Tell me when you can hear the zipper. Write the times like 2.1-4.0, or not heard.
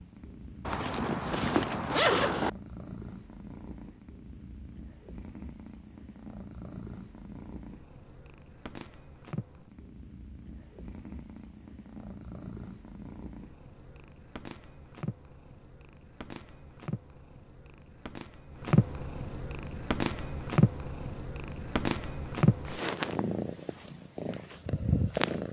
0.7-2.5.